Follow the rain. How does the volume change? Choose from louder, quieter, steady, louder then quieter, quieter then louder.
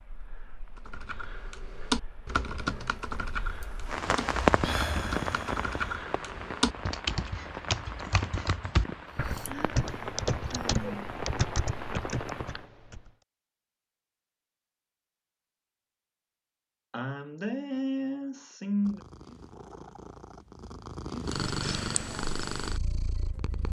louder then quieter.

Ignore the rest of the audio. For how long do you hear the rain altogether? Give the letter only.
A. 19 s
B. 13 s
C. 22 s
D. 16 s
B.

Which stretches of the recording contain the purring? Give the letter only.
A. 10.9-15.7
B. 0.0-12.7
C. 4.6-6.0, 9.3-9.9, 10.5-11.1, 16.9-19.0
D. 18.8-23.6
D.